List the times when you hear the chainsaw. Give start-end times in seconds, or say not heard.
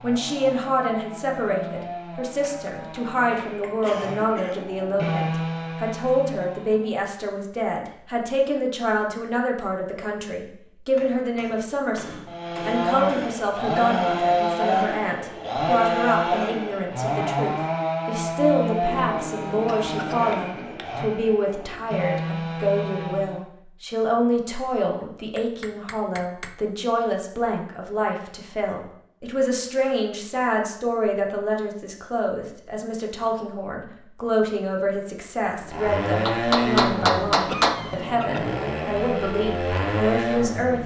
0.0-7.0, 12.2-23.4, 35.5-40.8.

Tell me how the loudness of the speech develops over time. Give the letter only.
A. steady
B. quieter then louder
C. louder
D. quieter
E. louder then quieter
A.